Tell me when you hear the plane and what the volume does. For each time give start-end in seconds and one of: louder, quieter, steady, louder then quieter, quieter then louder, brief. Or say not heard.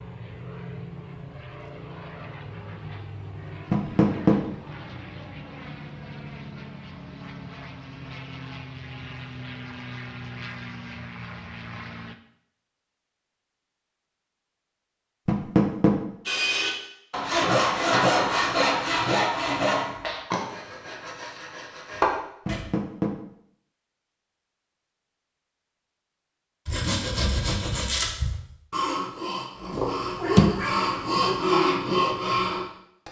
0.0-12.2 steady.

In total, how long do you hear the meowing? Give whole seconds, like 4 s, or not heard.
2 s.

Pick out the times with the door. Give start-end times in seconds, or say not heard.
3.7-4.3, 15.2-15.9, 22.4-23.1.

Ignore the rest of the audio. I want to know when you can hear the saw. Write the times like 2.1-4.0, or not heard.
16.2-22.6, 26.6-33.0.